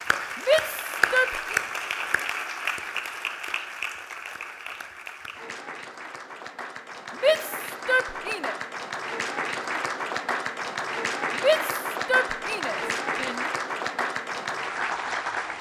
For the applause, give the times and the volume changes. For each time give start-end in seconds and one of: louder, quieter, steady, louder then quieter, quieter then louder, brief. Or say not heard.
0.0-15.5 quieter then louder.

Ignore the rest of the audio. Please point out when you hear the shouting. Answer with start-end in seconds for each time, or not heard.
0.3-1.6, 7.2-8.6, 11.3-13.4.